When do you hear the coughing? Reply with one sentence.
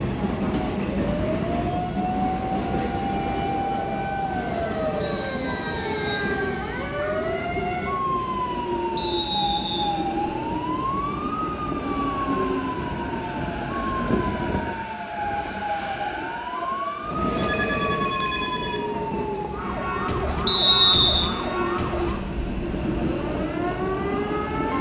The coughing can't be heard in this clip.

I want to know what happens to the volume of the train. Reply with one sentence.
The loudness of the train stays about the same.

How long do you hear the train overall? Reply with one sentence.
The train can be heard for 25 seconds in total.